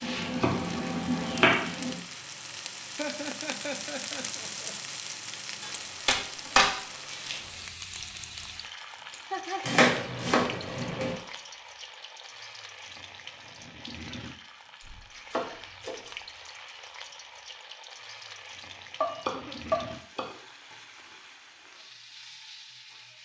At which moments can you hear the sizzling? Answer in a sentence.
The sizzling can be heard from 0.0 to 23.2 s.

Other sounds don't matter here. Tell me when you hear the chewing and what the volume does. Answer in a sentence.
You can't hear the chewing here.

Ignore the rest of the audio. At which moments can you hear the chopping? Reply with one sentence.
The chopping can be heard from 0.0 to 1.9 s, from 5.6 to 7.3 s, from 9.6 to 11.2 s, from 14.8 to 16.1 s and from 19.0 to 20.2 s.